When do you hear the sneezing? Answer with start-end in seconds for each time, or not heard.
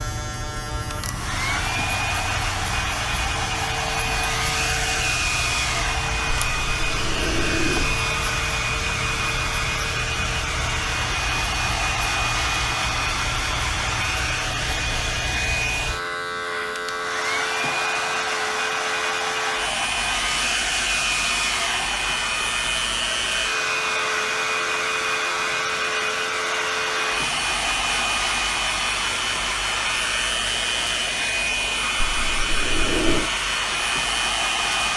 not heard.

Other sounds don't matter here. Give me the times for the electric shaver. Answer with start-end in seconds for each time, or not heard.
0.0-34.9.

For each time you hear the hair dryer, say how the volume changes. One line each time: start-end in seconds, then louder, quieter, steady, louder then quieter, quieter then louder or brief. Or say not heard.
0.8-34.9 steady.